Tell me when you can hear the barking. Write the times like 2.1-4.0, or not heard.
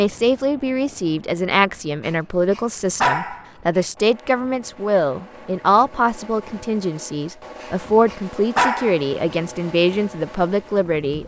2.0-3.8, 7.6-9.3.